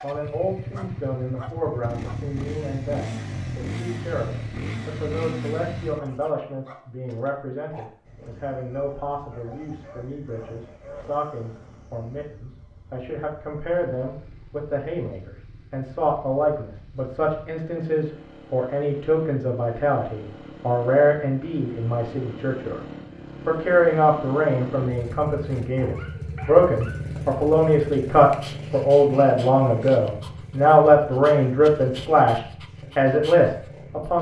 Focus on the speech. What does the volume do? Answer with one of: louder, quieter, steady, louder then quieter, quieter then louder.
louder.